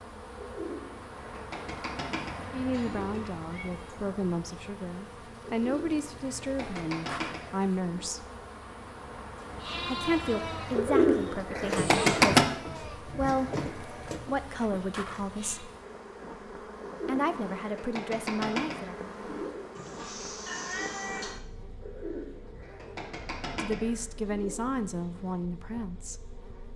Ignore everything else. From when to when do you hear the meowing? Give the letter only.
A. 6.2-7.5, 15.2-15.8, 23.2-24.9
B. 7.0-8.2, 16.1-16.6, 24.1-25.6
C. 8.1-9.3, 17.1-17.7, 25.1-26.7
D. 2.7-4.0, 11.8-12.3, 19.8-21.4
D.